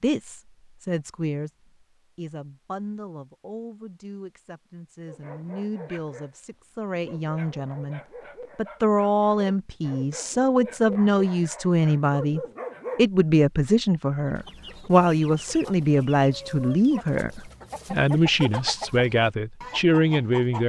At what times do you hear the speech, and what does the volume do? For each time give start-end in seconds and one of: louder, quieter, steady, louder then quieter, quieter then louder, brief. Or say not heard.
0.0-1.5 brief
2.1-20.6 louder.